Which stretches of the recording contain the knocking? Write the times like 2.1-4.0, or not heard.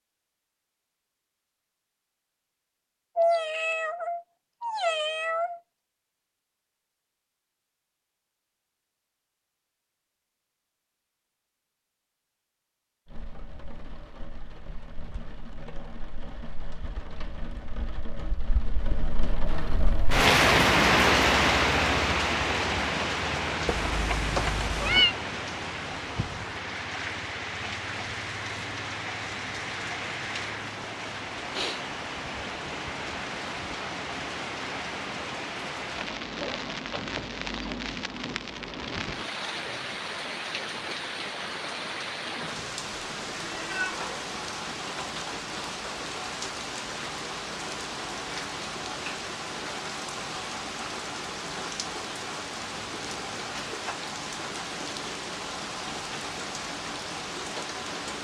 not heard.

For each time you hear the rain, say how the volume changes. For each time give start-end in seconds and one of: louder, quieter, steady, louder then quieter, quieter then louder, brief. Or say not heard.
13.1-58.2 quieter.